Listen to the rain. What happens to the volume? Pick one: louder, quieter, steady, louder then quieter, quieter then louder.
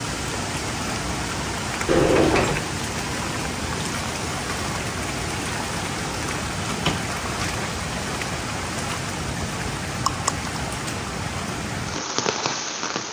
steady.